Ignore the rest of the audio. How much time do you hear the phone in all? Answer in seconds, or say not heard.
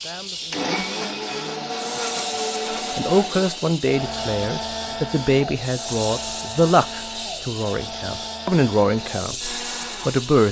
2 s.